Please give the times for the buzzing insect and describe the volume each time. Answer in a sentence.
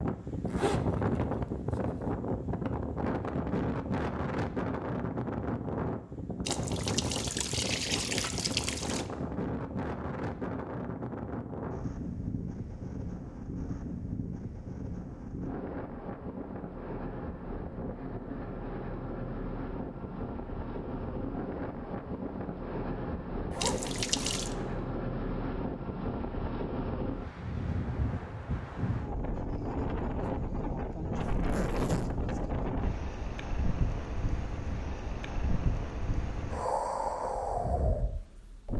The buzzing insect can't be heard in this clip.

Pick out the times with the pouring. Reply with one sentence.
You can hear the pouring from 6.5 to 9.1 s and from 23.6 to 24.6 s.